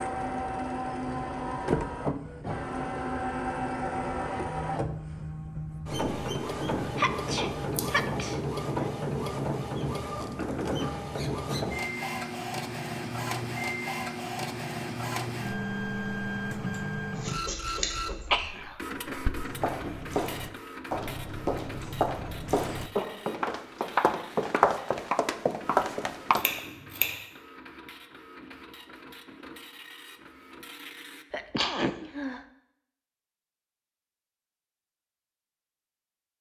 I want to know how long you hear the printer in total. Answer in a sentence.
You can hear the printer for 31 seconds altogether.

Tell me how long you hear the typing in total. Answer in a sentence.
The typing can't be heard in this clip.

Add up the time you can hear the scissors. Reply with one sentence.
The scissors can be heard for 2 seconds in total.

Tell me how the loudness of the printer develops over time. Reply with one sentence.
The loudness of the printer goes down.